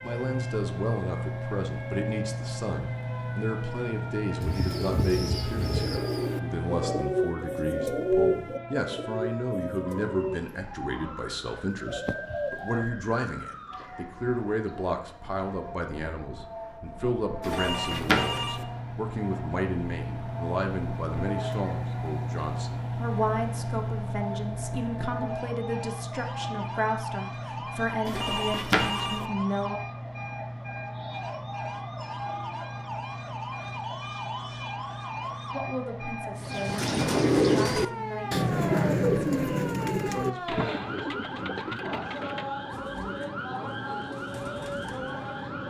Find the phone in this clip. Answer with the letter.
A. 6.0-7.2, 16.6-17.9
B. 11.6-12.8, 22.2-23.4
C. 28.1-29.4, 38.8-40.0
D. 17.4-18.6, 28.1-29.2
D.